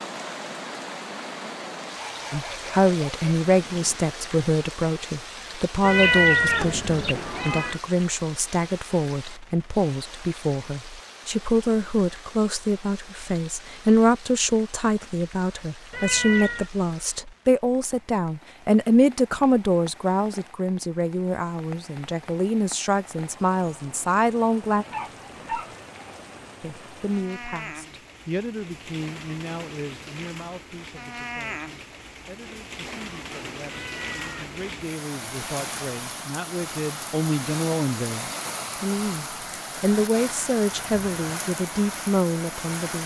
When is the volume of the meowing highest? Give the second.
6 s.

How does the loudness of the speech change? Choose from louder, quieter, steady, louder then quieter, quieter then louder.
quieter then louder.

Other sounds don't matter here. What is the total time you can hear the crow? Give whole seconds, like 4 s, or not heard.
not heard.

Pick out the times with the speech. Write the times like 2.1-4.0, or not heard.
2.3-24.9, 26.6-43.0.